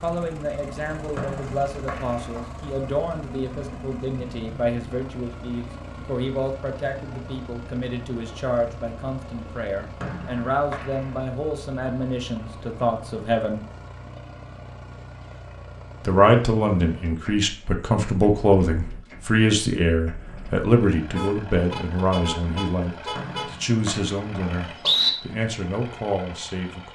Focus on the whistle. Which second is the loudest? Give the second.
25 s.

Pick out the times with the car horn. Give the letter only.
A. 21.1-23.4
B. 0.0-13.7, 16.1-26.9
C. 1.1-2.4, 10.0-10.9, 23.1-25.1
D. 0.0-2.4
A.